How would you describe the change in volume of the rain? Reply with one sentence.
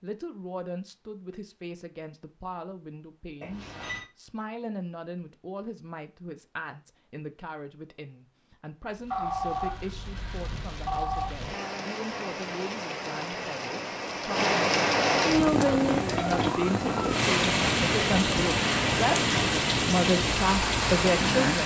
The volume of the rain goes up.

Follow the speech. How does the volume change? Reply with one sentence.
The loudness of the speech goes up.